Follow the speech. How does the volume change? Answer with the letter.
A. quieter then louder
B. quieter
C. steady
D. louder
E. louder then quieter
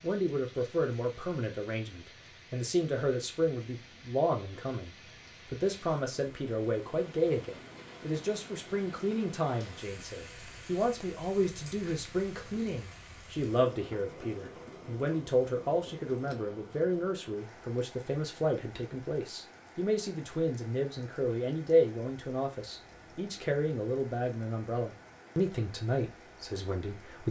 C.